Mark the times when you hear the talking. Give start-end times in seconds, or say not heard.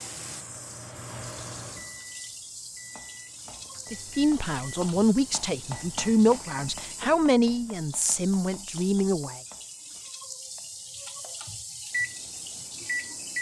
3.9-9.4.